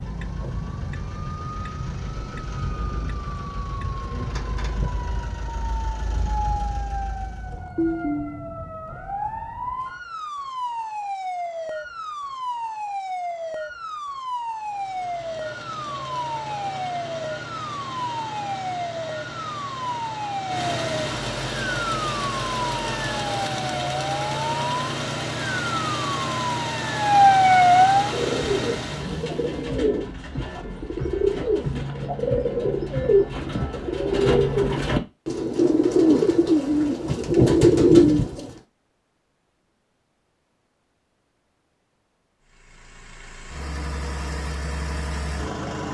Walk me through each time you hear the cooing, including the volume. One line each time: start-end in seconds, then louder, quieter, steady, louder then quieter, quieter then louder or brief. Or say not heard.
27.9-38.5 louder.